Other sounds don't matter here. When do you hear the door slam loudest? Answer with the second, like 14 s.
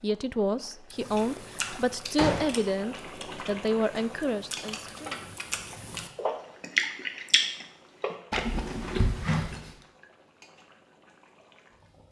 2 s.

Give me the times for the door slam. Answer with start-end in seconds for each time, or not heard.
1.0-2.7, 8.7-9.5.